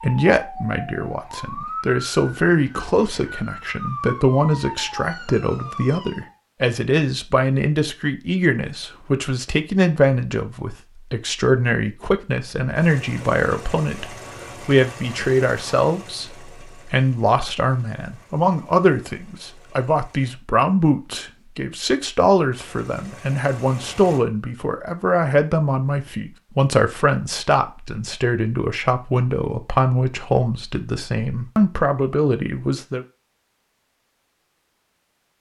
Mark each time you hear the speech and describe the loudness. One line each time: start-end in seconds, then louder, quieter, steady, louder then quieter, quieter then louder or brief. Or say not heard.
0.0-33.0 steady.